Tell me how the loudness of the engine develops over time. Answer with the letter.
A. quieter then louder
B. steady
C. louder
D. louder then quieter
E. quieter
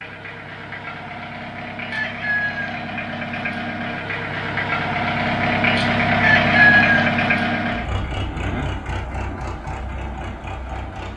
D.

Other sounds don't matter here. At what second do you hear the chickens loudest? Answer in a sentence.
The loudest moment of the chickens is at 7 seconds.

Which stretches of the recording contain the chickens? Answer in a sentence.
The chickens can be heard from 1.9 to 2.8 s and from 6.2 to 7.1 s.